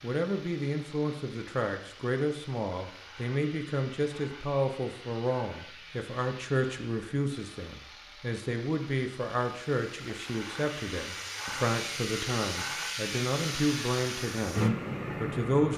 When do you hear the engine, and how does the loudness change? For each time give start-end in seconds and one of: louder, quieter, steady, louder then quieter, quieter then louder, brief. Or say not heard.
0.0-15.7 louder.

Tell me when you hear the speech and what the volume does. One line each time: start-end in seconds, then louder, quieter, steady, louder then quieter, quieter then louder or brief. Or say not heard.
0.0-15.7 steady.